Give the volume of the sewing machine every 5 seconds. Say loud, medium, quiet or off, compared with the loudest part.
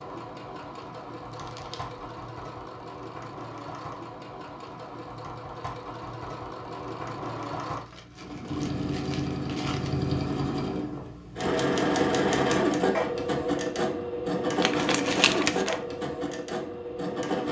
quiet, medium, loud, loud.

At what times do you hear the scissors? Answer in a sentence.
The scissors can't be heard in this clip.